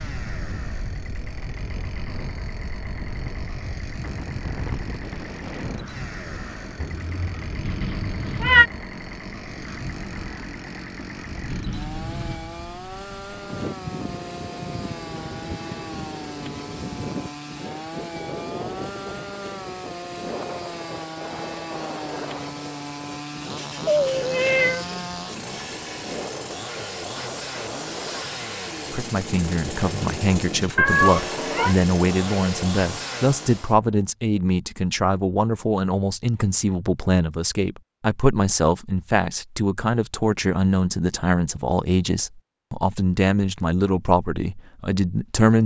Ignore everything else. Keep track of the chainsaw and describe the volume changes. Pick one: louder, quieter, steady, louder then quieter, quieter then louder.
louder.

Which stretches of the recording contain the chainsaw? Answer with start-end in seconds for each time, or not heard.
0.0-33.8.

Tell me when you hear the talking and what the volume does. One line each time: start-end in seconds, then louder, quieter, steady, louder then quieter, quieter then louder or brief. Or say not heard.
28.9-45.6 steady.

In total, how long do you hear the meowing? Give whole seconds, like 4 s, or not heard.
4 s.